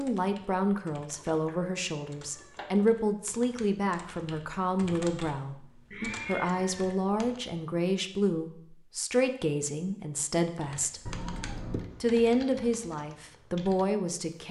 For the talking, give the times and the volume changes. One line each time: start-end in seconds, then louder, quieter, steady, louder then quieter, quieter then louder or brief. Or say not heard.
0.0-11.1 steady
12.0-14.4 brief.